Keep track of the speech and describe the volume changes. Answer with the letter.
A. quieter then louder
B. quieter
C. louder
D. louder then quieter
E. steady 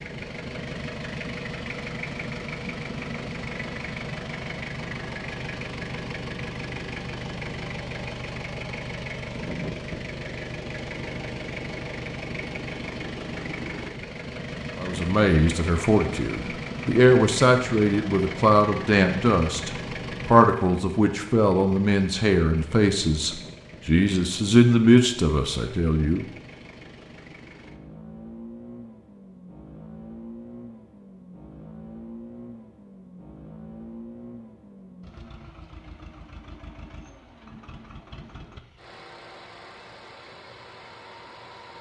E.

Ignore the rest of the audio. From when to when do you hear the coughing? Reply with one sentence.
You can't hear the coughing here.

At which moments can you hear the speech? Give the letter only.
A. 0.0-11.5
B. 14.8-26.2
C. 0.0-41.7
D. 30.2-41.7
B.